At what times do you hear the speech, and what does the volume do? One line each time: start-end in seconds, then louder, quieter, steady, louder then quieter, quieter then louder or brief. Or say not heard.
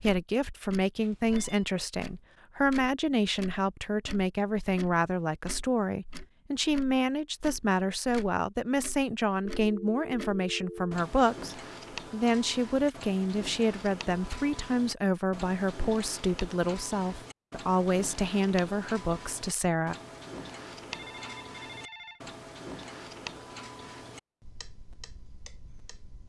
0.0-19.9 steady.